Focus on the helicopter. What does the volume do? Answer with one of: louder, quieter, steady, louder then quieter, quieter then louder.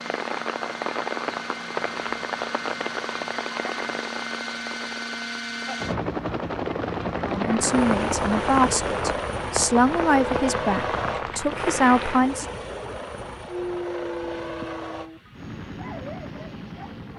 louder then quieter.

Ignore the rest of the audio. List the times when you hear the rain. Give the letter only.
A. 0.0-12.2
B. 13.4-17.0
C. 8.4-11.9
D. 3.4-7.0
A.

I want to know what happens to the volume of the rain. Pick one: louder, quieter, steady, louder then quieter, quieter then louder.
quieter then louder.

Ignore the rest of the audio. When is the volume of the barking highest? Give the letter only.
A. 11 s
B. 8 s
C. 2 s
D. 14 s
D.